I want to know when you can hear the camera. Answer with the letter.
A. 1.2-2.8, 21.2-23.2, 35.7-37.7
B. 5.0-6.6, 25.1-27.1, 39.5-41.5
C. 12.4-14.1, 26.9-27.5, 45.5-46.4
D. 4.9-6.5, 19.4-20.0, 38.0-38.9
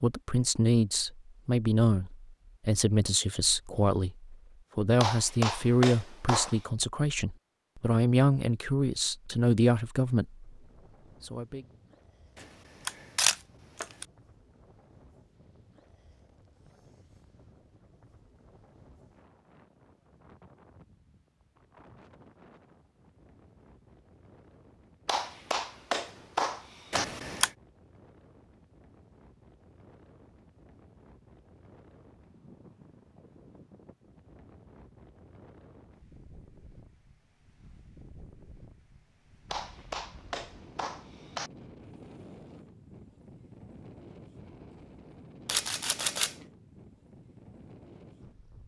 C.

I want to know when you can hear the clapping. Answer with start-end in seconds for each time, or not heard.
5.0-6.6, 25.1-27.1, 39.5-41.5.